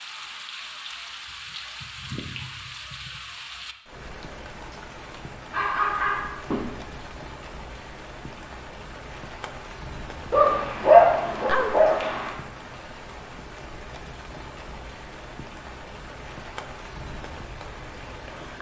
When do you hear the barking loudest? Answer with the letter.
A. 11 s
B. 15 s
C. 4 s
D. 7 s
A.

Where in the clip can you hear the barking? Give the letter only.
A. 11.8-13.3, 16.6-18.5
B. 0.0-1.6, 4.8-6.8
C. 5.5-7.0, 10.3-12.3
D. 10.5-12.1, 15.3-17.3
C.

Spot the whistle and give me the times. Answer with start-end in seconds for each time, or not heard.
not heard.